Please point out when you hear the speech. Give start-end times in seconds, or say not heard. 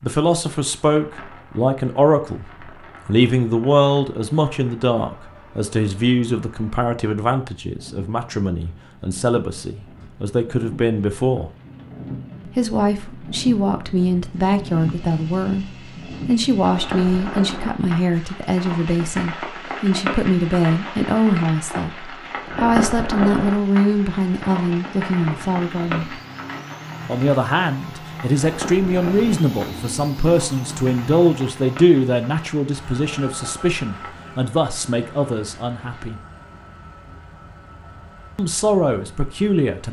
0.0-2.5, 3.0-11.5, 12.6-15.7, 16.2-26.1, 27.1-36.1, 38.4-39.8.